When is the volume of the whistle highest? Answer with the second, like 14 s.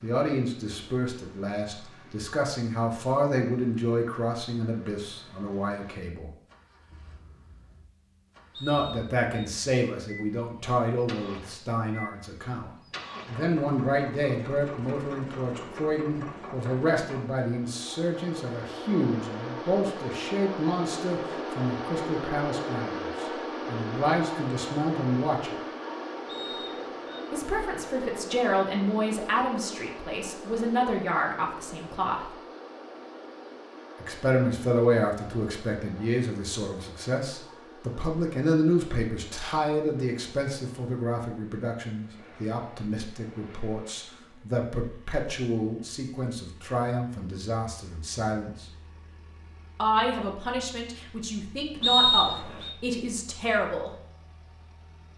52 s.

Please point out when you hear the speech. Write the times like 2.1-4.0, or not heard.
0.0-6.3, 8.6-25.6, 27.3-32.3, 34.0-48.7, 49.8-53.9.